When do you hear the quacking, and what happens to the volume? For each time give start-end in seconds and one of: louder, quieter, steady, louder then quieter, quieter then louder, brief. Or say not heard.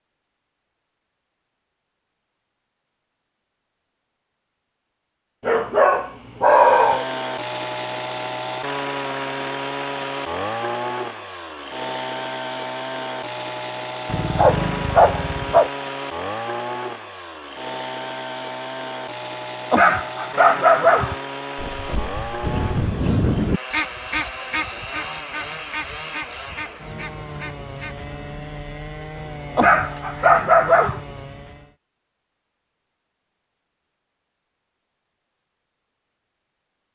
22.4-27.9 quieter.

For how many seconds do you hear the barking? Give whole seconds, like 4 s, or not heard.
6 s.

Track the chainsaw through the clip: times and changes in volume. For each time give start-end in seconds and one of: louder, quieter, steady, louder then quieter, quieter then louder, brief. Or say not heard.
6.4-31.8 quieter.